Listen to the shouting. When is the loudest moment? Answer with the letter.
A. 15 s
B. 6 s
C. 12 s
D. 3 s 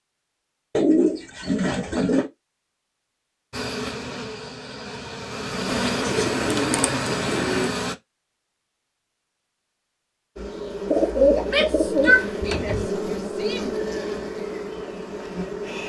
C.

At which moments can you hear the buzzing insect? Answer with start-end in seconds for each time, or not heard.
3.5-8.0, 10.3-15.8.